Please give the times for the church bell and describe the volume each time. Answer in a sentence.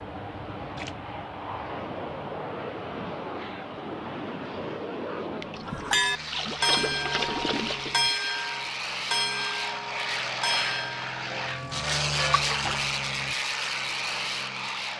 You can hear the church bell from 5.7 to 12.4 s, getting quieter.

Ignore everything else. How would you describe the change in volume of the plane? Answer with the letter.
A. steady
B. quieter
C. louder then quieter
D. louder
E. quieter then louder
D.